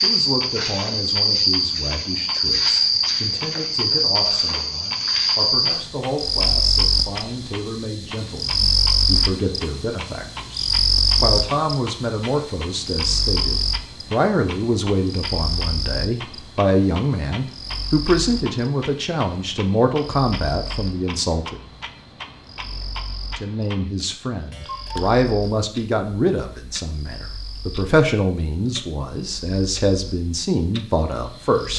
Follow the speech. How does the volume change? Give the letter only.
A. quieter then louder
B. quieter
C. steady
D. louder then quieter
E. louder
E.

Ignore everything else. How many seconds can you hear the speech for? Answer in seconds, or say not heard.
30 s.